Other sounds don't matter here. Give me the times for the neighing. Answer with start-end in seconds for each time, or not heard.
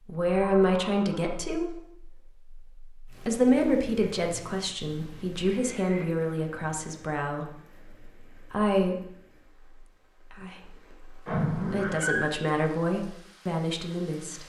0.2-1.4, 5.4-6.1, 11.2-12.3.